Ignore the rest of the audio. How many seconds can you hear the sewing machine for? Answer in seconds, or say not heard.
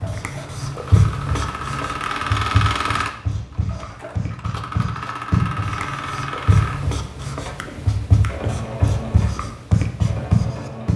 11 s.